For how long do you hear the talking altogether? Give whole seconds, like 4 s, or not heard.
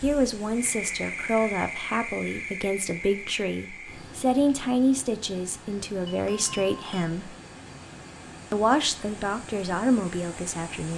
10 s.